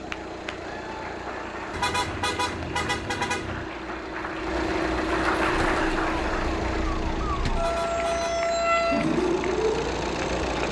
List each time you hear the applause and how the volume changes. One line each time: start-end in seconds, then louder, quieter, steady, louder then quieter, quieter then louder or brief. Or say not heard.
0.0-10.6 louder then quieter.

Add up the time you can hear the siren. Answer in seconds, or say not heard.
5 s.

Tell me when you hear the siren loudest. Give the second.
9 s.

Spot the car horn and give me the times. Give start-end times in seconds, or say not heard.
1.7-3.7, 7.5-8.4.